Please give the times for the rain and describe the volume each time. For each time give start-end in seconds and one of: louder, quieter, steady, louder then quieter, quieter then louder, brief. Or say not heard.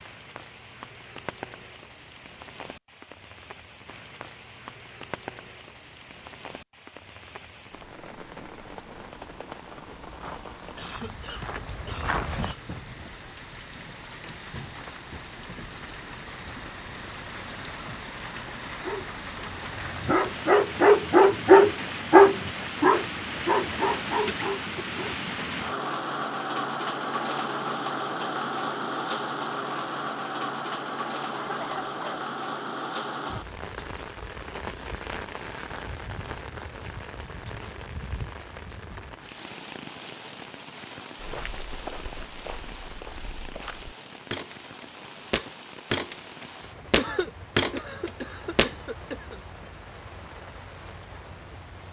0.0-51.8 louder then quieter.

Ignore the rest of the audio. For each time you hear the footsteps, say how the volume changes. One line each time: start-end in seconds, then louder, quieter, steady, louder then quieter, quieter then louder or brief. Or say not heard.
10.0-12.6 brief
41.2-48.8 louder.